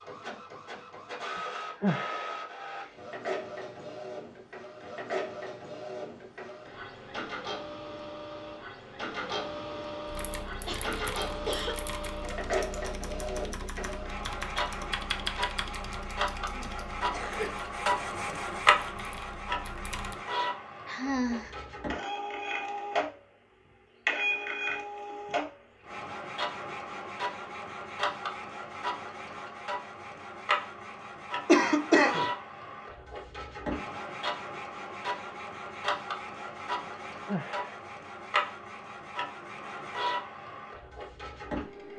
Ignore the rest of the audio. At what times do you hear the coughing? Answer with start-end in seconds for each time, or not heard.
10.6-11.8, 16.5-17.6, 31.4-32.2.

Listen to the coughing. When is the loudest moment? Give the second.
32 s.